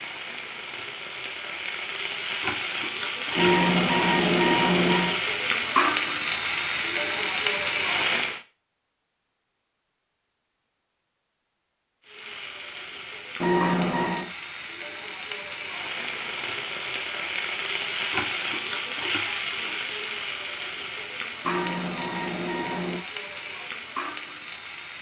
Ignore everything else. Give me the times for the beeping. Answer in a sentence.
The beeping can be heard from 3.4 to 5.2 s, from 13.4 to 14.3 s and from 21.4 to 23.0 s.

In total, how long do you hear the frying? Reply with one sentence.
You can hear the frying for 21 seconds altogether.